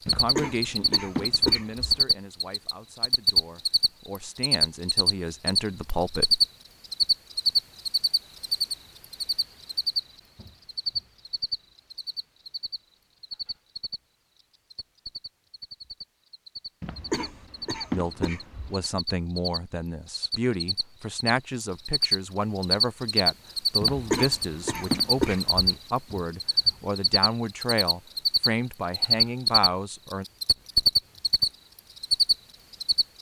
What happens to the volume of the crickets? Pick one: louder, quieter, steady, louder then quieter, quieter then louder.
quieter then louder.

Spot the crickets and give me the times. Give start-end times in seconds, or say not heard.
0.0-33.0.